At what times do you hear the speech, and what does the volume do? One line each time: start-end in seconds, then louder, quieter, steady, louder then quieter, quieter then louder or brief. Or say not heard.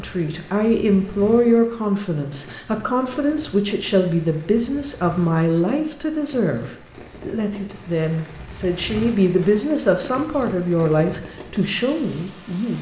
0.0-12.7 steady.